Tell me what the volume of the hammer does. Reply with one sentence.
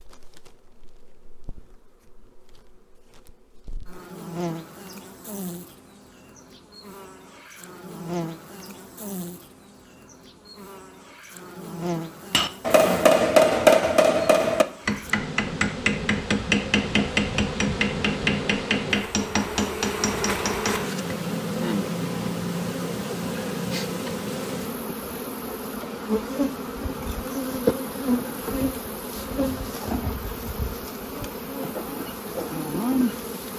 The loudness of the hammer goes down.